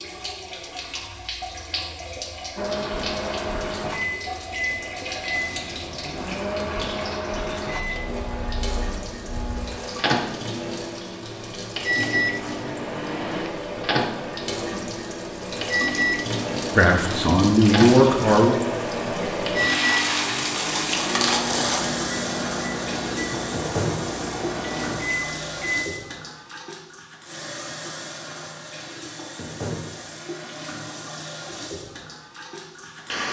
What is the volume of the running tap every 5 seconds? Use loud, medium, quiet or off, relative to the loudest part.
medium, medium, medium, loud, loud, medium, medium.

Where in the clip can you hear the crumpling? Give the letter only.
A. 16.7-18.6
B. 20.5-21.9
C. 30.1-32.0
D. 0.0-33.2
B.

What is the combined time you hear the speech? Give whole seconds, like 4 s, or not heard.
2 s.